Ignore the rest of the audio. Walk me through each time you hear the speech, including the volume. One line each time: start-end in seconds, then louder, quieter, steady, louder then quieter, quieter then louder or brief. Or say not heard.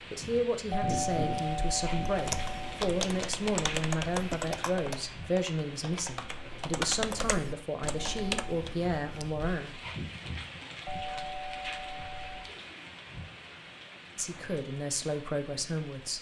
0.1-9.8 steady
14.2-16.1 brief.